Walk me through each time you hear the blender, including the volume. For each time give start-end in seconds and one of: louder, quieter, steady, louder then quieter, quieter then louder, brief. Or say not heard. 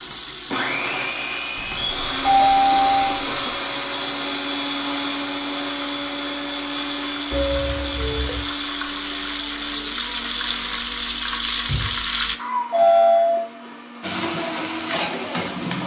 0.0-15.8 quieter.